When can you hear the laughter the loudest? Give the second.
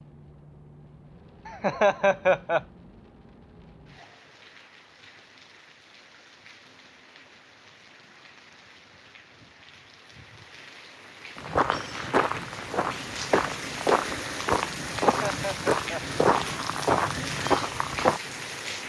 2 s.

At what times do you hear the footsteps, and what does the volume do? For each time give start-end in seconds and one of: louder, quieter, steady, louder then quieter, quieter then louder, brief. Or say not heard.
11.3-18.2 steady.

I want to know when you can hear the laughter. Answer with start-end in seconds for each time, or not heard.
1.4-2.6, 15.1-16.0.